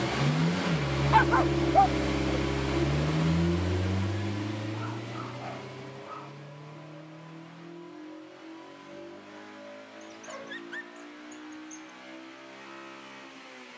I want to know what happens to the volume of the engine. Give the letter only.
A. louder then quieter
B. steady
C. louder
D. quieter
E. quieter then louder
D.